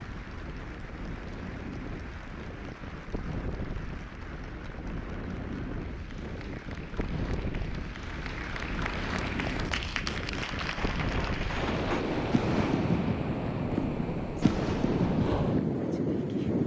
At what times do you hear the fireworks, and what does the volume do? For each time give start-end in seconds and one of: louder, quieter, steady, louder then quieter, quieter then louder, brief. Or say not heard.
10.6-15.7 louder.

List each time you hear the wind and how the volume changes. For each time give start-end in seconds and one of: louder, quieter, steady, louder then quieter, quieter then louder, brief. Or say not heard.
0.0-16.6 louder.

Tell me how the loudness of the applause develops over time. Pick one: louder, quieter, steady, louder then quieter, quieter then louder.
louder.